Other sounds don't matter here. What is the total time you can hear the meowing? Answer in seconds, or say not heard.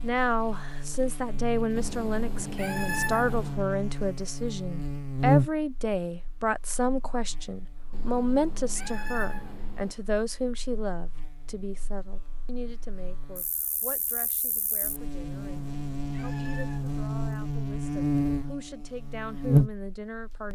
6 s.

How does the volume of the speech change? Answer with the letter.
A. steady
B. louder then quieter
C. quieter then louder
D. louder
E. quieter
E.